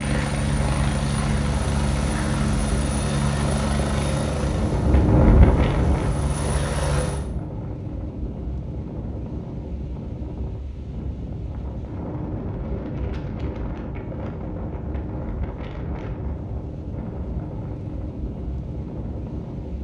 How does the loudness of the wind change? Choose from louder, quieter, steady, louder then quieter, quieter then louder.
louder then quieter.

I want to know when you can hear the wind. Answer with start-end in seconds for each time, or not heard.
0.0-19.8.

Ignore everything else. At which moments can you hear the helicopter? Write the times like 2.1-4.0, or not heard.
0.0-7.2.